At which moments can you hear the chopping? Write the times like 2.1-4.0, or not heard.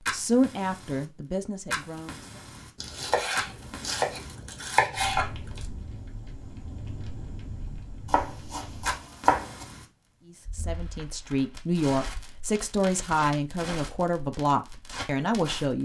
2.8-5.7, 8.1-9.7.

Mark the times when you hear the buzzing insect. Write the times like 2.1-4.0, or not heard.
not heard.